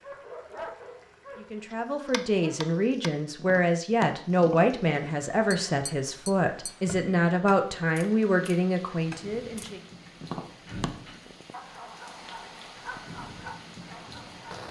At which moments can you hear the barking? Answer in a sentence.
You can hear the barking from 0.0 to 2.7 s and from 11.5 to 14.6 s.